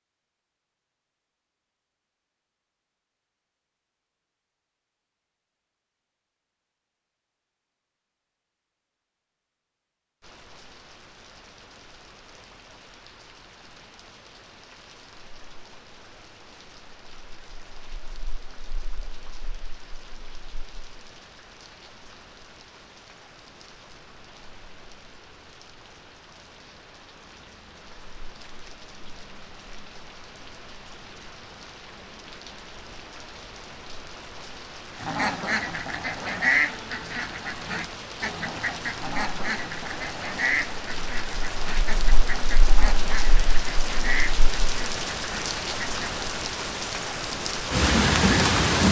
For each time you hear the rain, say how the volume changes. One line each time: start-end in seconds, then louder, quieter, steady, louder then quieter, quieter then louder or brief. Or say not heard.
10.2-48.8 louder.